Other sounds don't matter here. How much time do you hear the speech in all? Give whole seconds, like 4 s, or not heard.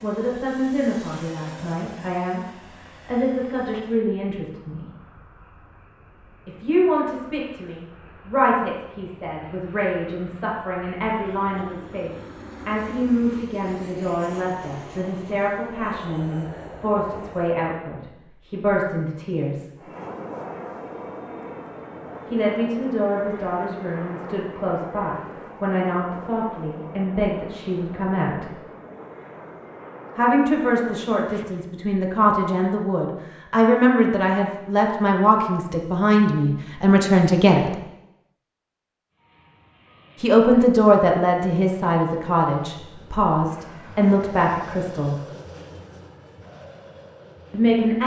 37 s.